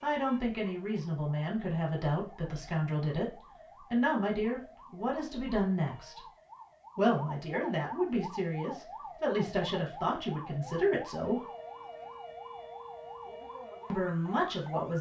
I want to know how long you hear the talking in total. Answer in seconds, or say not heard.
12 s.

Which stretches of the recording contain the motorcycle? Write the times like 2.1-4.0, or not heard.
not heard.